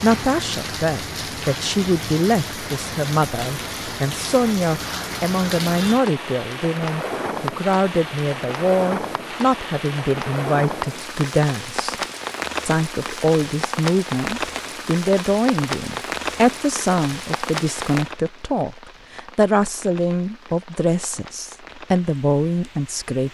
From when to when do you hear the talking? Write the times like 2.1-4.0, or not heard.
0.0-11.9, 12.7-23.2.